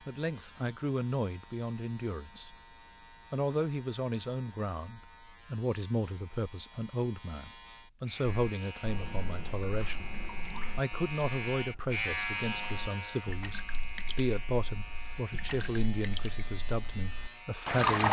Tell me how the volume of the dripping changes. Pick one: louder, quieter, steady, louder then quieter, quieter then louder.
quieter then louder.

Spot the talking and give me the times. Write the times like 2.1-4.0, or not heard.
0.1-2.5, 3.3-18.0.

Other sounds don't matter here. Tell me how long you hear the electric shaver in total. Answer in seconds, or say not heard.
18 s.